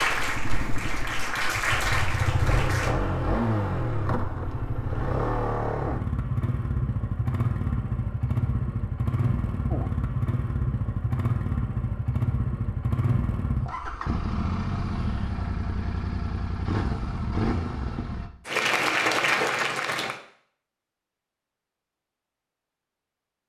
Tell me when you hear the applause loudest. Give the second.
19 s.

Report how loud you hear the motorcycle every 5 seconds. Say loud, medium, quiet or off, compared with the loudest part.
loud, loud, loud, loud, off.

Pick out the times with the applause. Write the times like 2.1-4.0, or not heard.
0.0-3.0, 18.4-20.2.